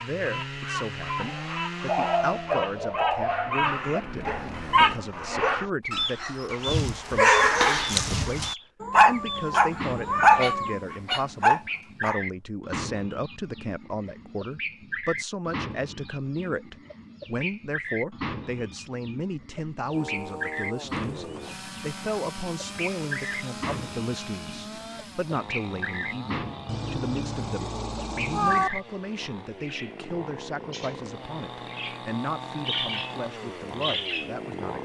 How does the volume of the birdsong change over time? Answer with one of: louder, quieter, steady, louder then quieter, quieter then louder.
quieter.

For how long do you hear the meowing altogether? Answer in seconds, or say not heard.
4 s.